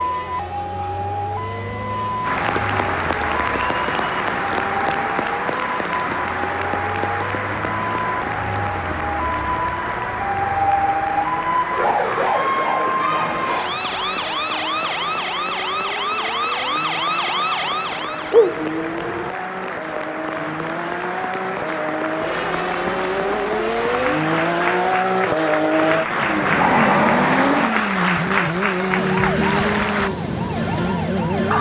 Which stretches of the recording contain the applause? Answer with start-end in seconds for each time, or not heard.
2.2-30.1.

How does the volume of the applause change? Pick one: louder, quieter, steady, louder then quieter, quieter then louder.
quieter then louder.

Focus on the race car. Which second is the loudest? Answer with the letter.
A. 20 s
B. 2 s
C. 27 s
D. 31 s
C.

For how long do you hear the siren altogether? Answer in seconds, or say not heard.
22 s.